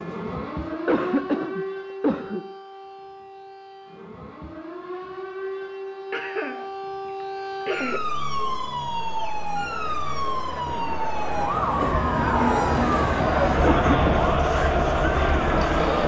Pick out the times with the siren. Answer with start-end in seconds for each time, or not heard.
0.0-14.4.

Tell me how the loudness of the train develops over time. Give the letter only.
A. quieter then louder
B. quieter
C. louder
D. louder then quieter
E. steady
E.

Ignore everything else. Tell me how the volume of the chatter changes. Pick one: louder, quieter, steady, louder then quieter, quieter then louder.
louder.